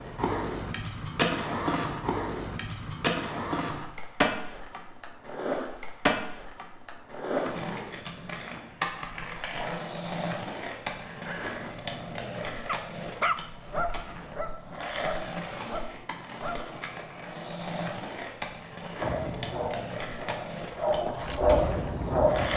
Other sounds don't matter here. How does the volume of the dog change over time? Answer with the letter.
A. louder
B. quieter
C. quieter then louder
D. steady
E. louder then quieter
A.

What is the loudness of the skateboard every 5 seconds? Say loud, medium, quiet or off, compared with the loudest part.
loud, loud, medium, medium, medium.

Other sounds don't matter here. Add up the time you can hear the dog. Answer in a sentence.
You can hear the dog for 9 seconds altogether.